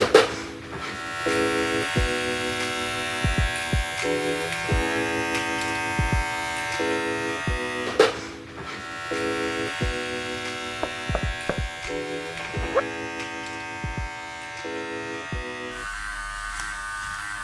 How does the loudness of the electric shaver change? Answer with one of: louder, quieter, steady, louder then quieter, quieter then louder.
quieter.